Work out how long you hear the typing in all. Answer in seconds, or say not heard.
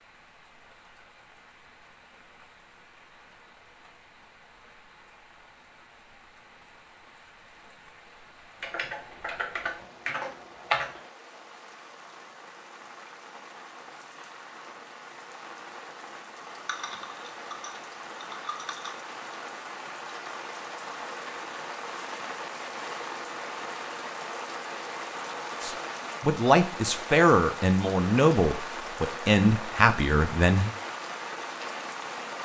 5 s.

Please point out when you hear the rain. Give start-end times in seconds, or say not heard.
0.0-32.3.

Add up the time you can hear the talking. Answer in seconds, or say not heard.
5 s.